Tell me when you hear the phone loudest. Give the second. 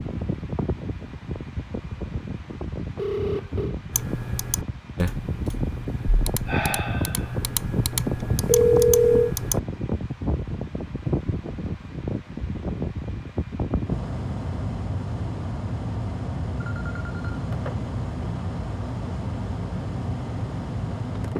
9 s.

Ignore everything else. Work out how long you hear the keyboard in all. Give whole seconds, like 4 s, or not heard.
6 s.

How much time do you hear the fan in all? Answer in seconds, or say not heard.
21 s.